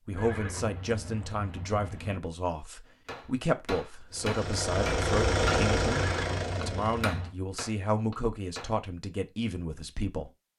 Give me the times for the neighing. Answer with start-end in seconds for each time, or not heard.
0.1-2.2, 5.9-7.3.